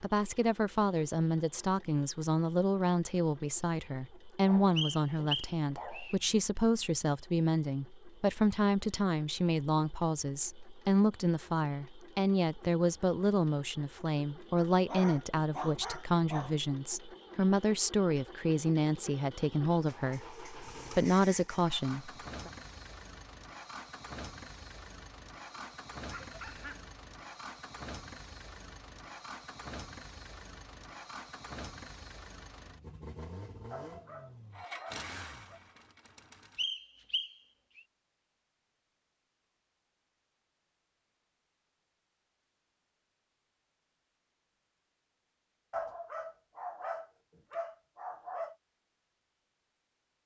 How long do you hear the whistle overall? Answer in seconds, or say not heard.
3 s.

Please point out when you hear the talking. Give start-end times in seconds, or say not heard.
0.0-22.5.